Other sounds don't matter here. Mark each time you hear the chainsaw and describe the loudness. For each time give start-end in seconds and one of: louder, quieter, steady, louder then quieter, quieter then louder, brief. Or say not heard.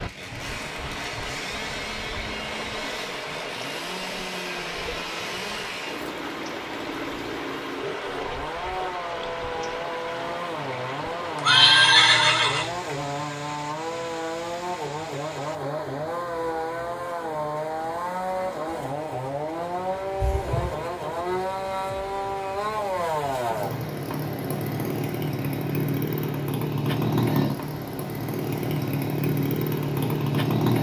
0.0-30.7 louder.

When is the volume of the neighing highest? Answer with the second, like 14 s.
12 s.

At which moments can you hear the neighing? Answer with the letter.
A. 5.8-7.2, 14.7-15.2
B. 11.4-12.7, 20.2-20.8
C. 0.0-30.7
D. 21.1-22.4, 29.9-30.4
B.